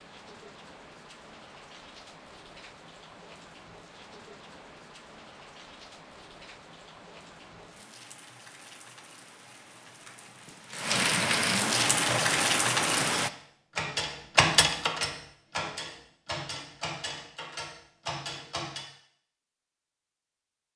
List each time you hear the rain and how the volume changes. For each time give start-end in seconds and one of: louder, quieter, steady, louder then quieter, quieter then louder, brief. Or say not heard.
0.0-13.3 louder.